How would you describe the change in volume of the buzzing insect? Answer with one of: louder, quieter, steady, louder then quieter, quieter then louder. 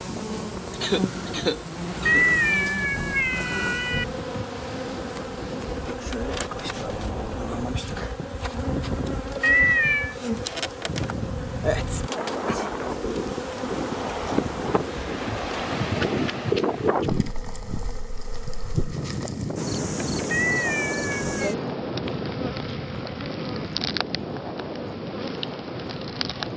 steady.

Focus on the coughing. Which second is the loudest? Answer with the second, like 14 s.
1 s.